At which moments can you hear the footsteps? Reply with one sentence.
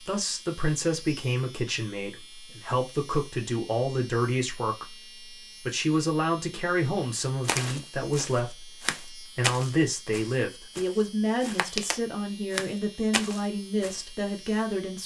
You can hear the footsteps from 7.5 to 14.1 s.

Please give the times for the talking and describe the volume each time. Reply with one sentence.
You can hear the talking from 0.0 to 15.0 s, at a steady volume.